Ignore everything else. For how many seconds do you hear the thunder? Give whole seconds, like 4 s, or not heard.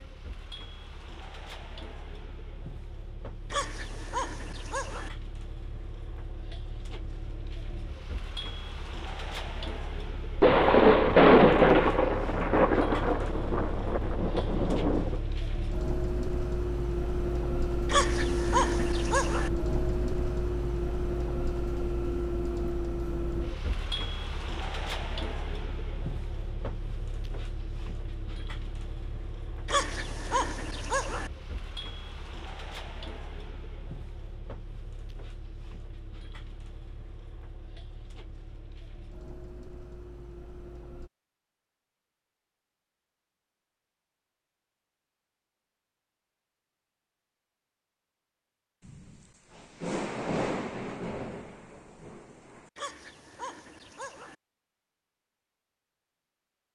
9 s.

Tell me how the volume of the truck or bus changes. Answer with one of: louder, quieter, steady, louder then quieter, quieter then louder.
louder then quieter.